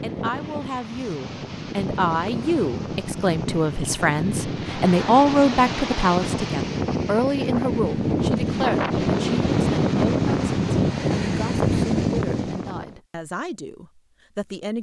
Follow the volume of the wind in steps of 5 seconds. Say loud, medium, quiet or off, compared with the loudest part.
medium, loud, loud.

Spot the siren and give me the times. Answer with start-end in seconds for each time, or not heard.
not heard.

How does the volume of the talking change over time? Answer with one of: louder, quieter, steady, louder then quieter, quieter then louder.
louder then quieter.